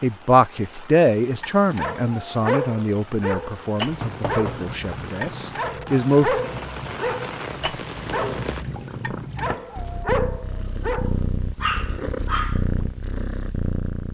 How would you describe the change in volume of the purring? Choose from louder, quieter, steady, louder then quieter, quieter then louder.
louder.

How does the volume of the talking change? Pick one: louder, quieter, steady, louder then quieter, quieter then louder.
quieter.